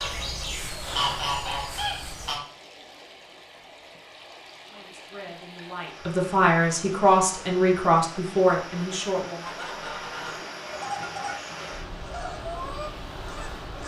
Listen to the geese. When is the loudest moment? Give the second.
1 s.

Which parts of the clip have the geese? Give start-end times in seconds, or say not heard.
0.0-2.4, 9.4-13.8.